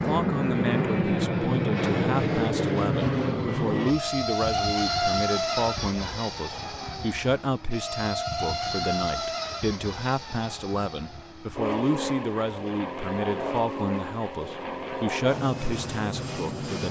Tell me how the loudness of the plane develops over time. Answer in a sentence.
The volume of the plane goes down.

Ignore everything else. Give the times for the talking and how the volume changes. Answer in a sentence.
You can hear the talking from 0.1 to 16.8 s, at a steady volume.